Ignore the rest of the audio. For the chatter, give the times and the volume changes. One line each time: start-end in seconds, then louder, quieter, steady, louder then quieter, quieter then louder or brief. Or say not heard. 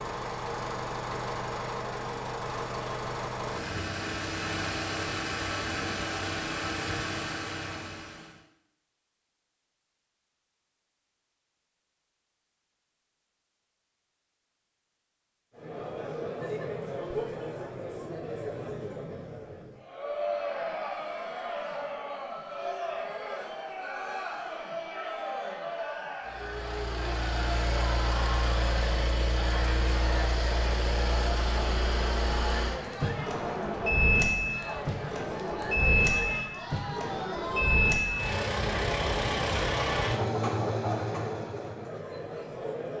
15.6-42.9 steady.